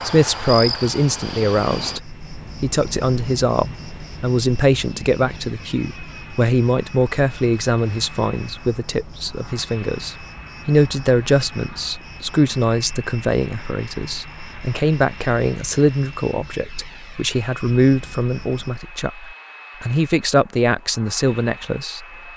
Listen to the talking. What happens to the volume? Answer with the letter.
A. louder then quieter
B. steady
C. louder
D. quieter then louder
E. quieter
B.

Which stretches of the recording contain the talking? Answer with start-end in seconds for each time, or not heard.
0.0-22.1.